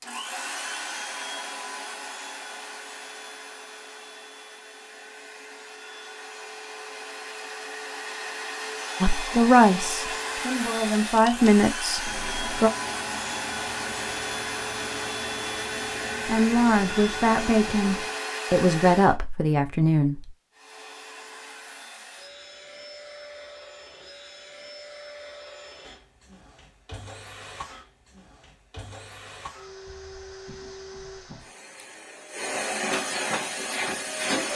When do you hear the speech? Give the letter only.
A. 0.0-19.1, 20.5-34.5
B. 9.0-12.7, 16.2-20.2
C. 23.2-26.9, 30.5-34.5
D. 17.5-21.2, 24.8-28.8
B.